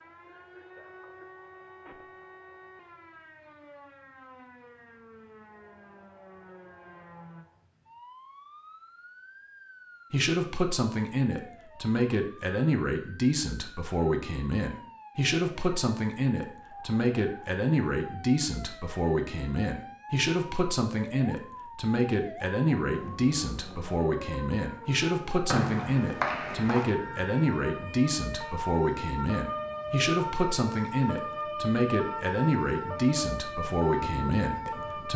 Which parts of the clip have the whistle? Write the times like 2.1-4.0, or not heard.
25.4-26.9.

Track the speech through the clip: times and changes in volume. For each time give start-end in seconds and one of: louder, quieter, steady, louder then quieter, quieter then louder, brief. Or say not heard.
10.1-35.1 steady.